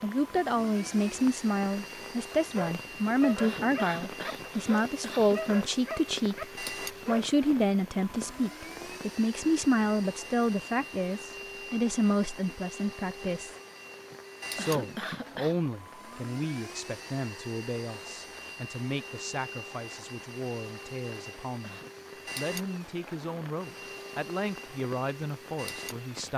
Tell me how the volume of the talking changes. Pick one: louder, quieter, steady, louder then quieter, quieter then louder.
quieter.